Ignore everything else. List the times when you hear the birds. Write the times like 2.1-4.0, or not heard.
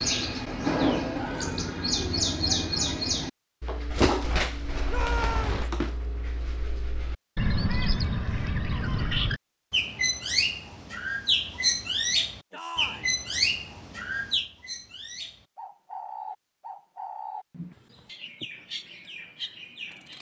0.0-20.1.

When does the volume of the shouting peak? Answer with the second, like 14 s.
5 s.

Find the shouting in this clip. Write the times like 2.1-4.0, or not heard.
4.8-5.7, 12.5-13.2.